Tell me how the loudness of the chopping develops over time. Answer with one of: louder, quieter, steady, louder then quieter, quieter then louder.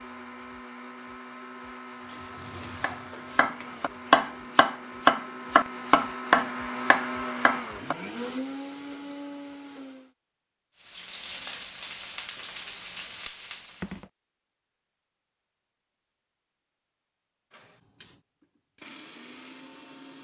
louder then quieter.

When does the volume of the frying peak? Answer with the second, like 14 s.
12 s.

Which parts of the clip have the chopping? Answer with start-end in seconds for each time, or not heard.
2.8-8.0.